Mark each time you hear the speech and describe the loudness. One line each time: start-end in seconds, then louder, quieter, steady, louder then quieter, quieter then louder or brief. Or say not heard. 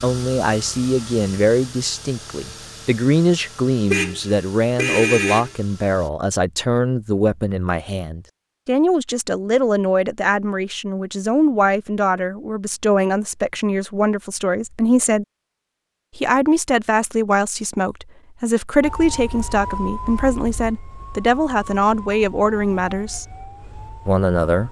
0.0-15.2 steady
16.1-23.2 steady
24.1-24.6 brief.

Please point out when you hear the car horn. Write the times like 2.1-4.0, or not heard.
3.9-5.5.